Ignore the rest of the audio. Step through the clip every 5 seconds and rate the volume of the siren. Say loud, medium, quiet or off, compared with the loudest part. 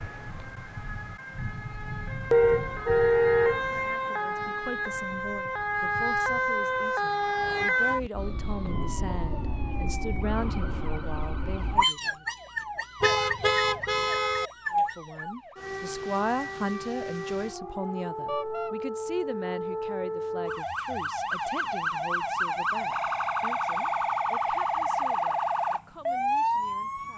medium, loud, medium, medium, loud, loud.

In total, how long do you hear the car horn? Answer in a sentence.
The car horn can be heard for 3 seconds in total.